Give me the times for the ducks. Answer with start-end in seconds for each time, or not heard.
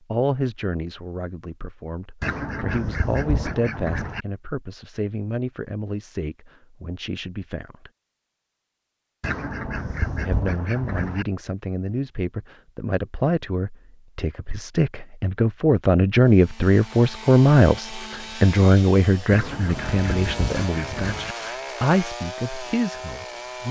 2.2-4.2, 9.2-11.2, 19.3-21.4.